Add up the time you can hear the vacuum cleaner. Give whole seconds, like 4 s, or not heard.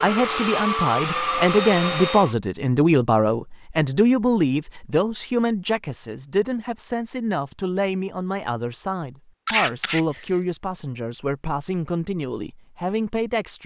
2 s.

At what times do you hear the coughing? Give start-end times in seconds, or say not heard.
9.4-10.2.